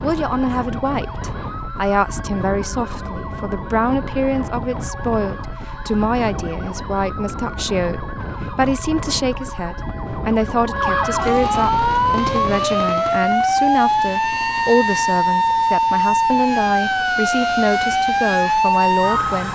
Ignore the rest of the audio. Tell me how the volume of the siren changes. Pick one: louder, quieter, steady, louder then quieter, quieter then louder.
louder.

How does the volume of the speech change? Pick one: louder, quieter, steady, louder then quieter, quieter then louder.
steady.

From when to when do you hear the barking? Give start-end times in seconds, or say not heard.
not heard.